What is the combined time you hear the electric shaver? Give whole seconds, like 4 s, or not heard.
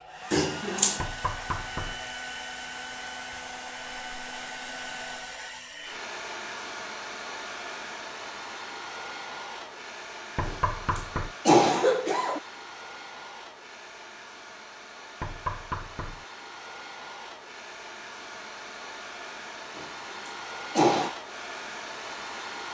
not heard.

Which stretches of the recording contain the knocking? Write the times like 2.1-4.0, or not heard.
1.0-2.0, 10.3-11.3, 15.2-16.2.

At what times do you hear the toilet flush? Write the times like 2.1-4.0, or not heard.
not heard.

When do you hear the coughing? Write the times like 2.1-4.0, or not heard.
0.3-1.0, 10.4-12.4, 19.8-21.1.